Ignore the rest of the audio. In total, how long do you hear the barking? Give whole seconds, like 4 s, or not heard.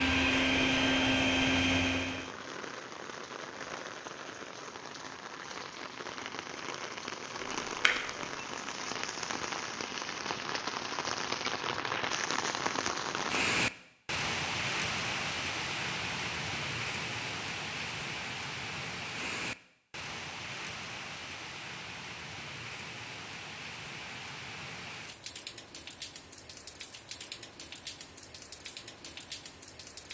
not heard.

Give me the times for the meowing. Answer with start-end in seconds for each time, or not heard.
7.4-8.4.